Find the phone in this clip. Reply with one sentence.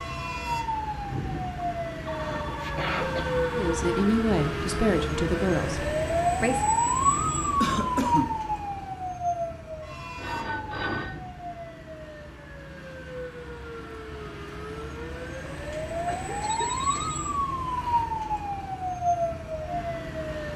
The phone can be heard from 2.0 to 3.9 s, from 10.2 to 11.2 s and from 15.7 to 17.2 s.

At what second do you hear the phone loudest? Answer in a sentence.
The volume of the phone peaks at 11 seconds.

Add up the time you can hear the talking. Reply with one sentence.
The talking can be heard for 3 seconds in total.